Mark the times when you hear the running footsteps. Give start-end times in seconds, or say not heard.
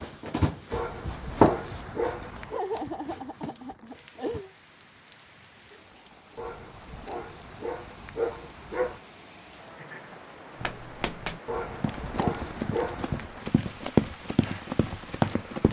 0.0-4.5, 10.6-15.6.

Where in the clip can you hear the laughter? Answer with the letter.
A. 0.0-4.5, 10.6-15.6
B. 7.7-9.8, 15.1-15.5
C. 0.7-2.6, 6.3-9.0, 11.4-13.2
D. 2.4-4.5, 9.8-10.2
D.